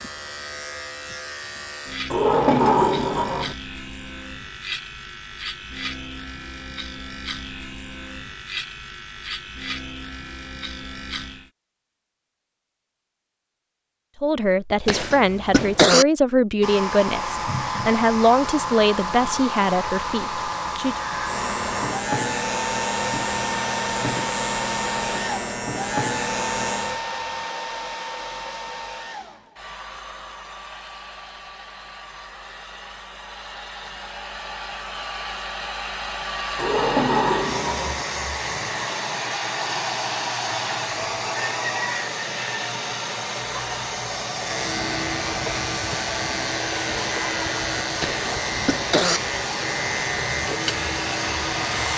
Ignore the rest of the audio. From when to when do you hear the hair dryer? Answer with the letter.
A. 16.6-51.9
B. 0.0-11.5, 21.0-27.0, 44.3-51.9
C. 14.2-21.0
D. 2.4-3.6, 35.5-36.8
A.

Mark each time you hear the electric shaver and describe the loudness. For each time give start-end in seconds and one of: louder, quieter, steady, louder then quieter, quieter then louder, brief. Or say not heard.
0.0-11.5 steady
21.0-27.0 steady
44.3-51.9 steady.